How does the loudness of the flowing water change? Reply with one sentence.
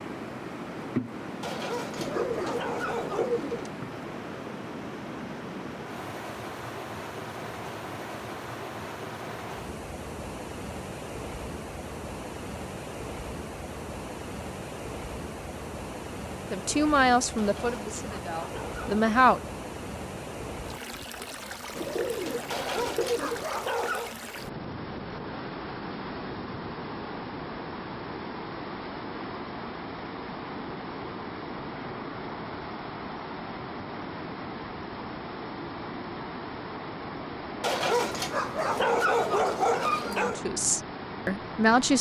The loudness of the flowing water stays about the same.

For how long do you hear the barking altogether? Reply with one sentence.
You can hear the barking for 8 seconds altogether.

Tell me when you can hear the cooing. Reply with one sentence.
The cooing can be heard from 1.9 to 3.7 s and from 21.8 to 23.5 s.